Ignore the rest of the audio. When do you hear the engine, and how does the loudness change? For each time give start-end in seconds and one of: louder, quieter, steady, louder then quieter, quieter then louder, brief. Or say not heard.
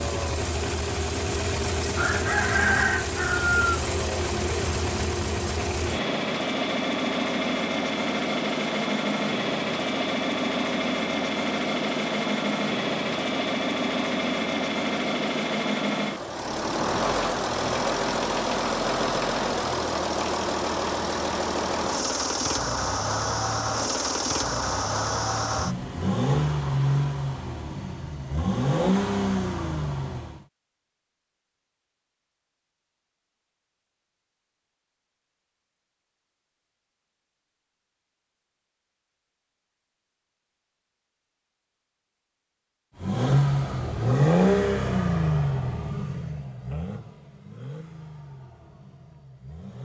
0.0-30.4 steady
43.0-49.8 quieter.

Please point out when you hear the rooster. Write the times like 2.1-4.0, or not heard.
1.9-3.5.